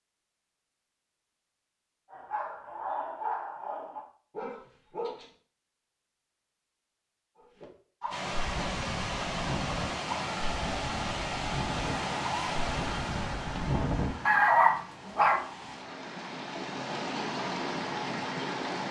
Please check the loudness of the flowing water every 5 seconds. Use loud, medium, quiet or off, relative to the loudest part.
off, loud, loud, loud.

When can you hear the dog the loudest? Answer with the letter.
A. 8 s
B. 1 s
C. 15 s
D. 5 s
C.